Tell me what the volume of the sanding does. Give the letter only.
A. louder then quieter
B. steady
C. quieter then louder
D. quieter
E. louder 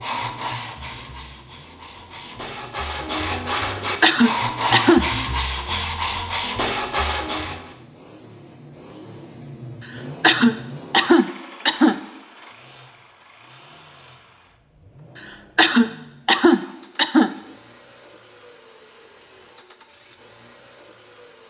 E.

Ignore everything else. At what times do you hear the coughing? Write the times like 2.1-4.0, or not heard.
4.0-5.0, 10.2-11.9, 15.6-17.3.